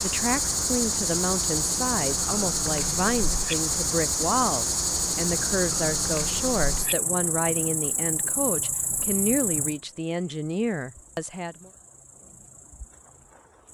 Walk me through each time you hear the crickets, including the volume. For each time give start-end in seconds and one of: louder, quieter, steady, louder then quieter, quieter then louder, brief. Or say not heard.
0.0-13.7 quieter.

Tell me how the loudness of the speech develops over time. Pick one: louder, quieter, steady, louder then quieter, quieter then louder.
steady.